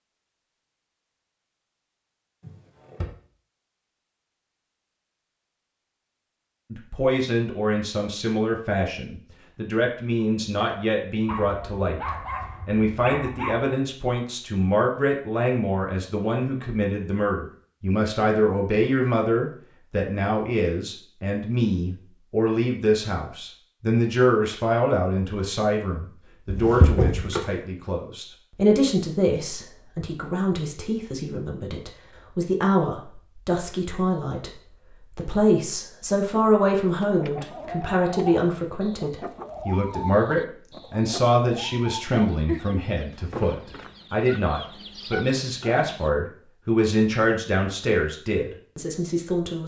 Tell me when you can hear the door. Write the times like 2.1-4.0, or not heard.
2.4-3.1, 26.4-27.4.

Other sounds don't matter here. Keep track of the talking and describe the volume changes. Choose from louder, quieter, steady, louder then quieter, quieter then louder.
steady.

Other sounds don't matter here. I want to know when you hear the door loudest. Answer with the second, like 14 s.
27 s.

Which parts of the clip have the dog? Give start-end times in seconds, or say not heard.
11.2-13.8.